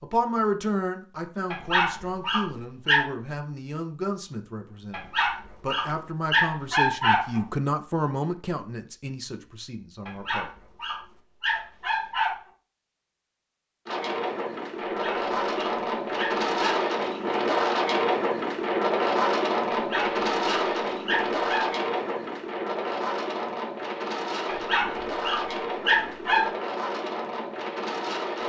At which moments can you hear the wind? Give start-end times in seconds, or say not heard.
13.8-28.4.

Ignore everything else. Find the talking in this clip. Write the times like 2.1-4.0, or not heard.
0.0-10.5.